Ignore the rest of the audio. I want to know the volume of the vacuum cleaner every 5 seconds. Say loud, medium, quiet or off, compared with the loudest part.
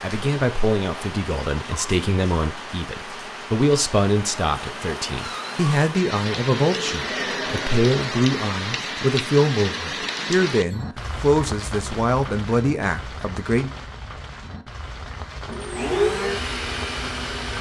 off, medium, off, loud.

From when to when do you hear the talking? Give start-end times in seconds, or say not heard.
0.0-13.7.